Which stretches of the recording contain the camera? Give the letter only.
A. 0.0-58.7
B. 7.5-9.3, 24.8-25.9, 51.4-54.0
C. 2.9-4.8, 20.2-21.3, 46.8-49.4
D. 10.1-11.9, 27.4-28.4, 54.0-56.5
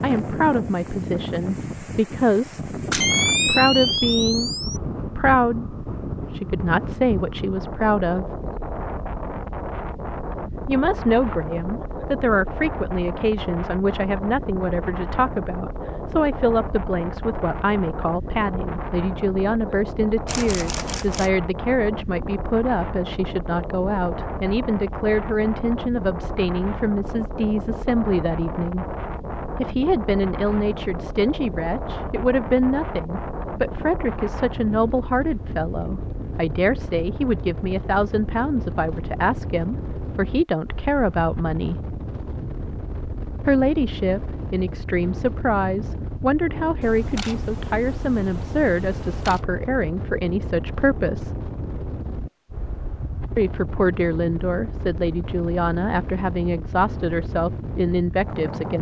C.